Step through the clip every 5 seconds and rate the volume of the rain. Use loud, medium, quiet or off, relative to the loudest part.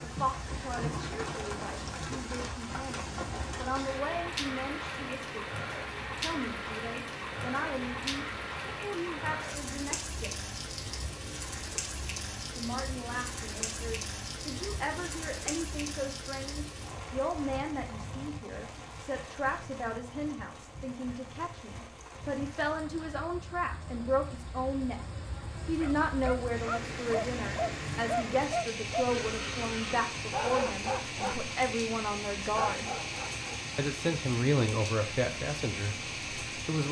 loud, loud, loud, medium, medium, loud, loud, loud.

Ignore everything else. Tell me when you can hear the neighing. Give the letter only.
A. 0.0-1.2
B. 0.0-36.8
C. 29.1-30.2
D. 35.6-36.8
C.